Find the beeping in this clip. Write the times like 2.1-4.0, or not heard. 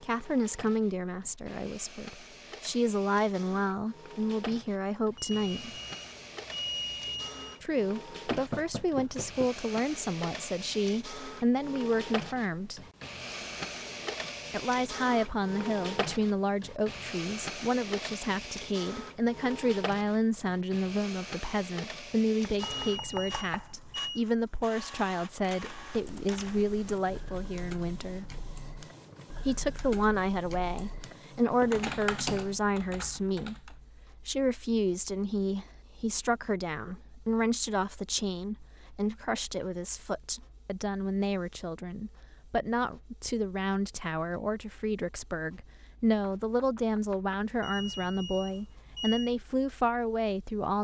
5.2-7.6, 22.6-24.2, 47.6-49.4.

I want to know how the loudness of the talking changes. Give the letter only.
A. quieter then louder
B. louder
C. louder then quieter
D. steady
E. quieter
D.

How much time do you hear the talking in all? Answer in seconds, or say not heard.
46 s.